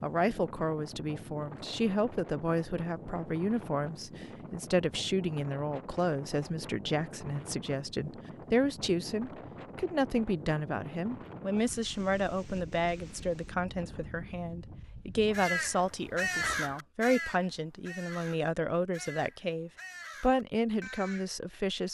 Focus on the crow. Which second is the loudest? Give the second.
16 s.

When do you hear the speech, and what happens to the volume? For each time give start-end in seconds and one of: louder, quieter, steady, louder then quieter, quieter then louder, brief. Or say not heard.
0.0-21.8 steady.